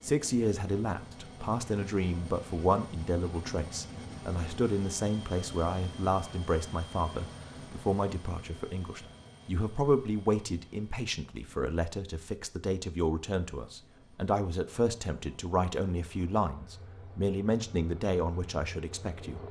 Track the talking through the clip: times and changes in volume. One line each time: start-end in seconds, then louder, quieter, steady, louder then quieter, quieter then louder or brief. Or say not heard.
0.0-19.4 steady.